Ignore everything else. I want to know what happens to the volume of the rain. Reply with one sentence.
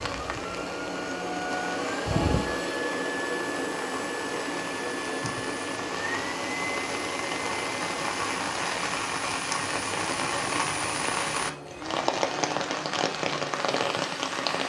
The loudness of the rain goes up.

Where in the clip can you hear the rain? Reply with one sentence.
The rain can be heard from 0.0 to 14.6 s.